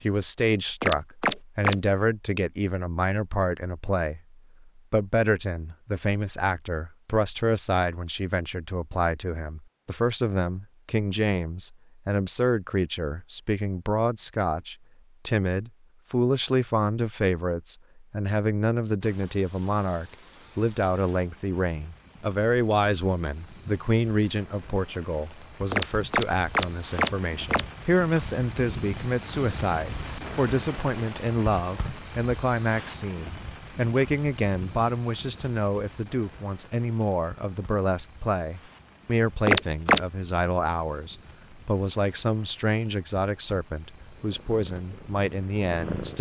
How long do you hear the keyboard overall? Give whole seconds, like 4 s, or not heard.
not heard.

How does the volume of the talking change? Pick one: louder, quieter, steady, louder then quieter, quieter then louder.
steady.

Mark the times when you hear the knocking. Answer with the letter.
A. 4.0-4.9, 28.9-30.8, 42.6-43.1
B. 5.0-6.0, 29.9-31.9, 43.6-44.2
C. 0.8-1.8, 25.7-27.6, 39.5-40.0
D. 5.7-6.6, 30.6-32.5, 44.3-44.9
C.